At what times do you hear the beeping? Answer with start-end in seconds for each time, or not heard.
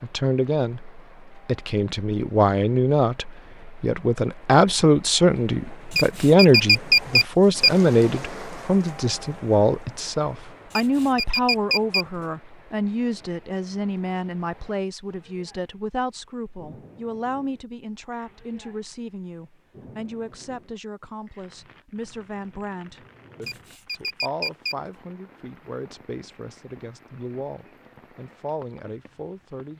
6.0-7.7, 10.7-12.1, 23.4-24.8.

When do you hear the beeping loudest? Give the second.
7 s.